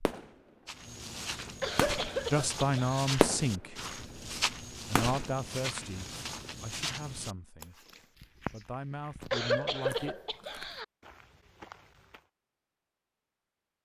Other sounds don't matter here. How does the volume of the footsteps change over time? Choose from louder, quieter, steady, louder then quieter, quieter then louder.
quieter.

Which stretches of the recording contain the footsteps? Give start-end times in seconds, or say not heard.
0.7-12.2.